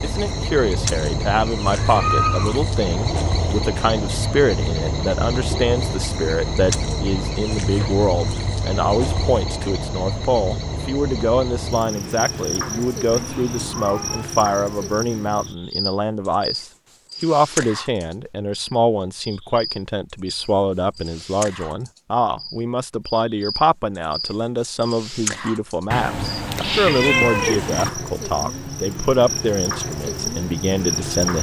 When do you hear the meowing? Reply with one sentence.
The meowing can be heard from 1.6 to 2.6 s, from 13.1 to 14.3 s and from 25.9 to 27.9 s.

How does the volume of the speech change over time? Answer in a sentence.
The loudness of the speech stays about the same.